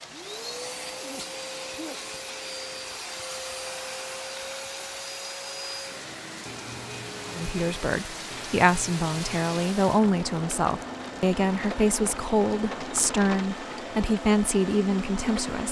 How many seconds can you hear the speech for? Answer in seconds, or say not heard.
8 s.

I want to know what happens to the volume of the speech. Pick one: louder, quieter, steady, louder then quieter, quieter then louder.
steady.